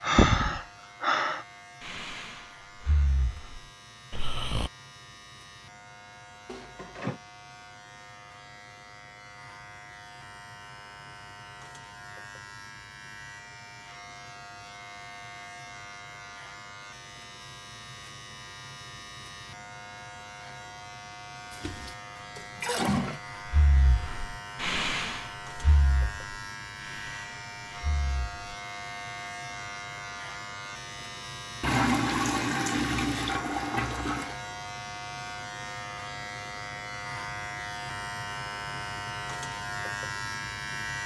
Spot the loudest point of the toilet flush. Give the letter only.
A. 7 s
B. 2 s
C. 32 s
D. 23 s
C.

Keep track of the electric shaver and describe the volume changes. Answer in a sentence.
The volume of the electric shaver goes up.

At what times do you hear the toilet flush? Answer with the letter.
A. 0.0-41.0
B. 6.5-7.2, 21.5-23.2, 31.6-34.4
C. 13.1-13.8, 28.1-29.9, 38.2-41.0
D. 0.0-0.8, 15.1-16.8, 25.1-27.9
B.